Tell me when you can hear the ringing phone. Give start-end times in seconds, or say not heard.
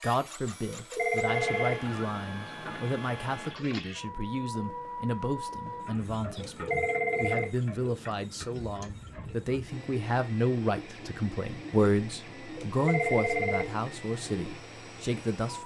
0.7-1.8, 6.4-7.5, 12.6-13.7.